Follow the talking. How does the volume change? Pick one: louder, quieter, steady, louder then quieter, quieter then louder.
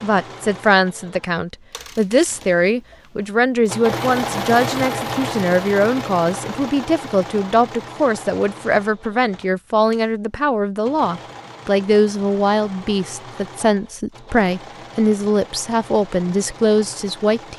steady.